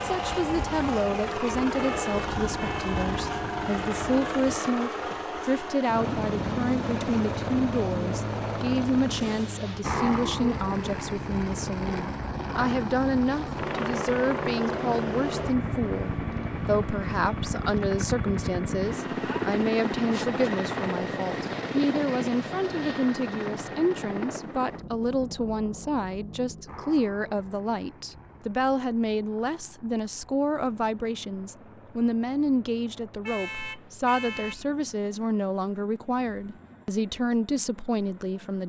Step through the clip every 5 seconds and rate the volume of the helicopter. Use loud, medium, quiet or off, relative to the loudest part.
loud, loud, loud, loud, loud, quiet, quiet, quiet.